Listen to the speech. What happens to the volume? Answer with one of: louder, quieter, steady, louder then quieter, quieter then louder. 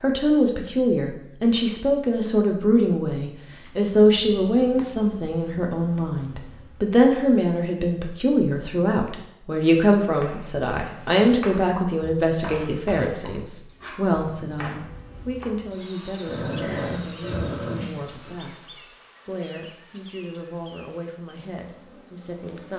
quieter.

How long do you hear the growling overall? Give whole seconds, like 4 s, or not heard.
2 s.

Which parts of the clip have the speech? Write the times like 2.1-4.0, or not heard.
0.0-22.7.